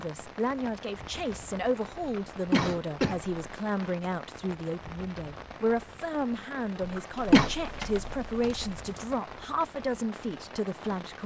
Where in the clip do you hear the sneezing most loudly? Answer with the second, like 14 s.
7 s.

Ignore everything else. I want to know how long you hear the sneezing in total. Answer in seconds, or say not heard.
2 s.